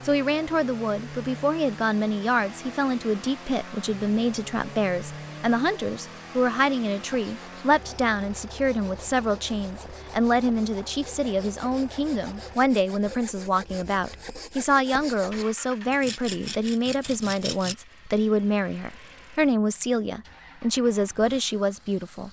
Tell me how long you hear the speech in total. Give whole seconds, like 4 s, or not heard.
22 s.